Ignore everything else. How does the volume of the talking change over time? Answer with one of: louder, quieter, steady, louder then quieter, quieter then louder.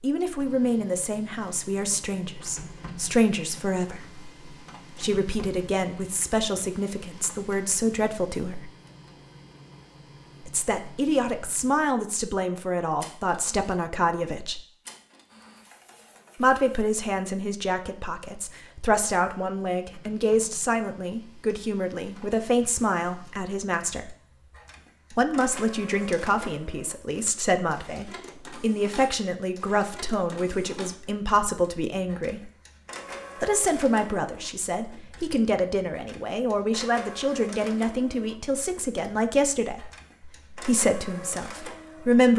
steady.